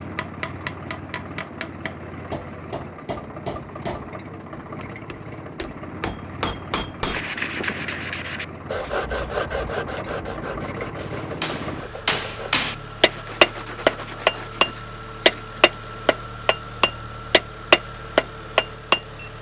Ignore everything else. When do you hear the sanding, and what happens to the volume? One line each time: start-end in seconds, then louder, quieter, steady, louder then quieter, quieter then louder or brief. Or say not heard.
7.0-15.7 quieter.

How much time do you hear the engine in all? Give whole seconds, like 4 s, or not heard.
19 s.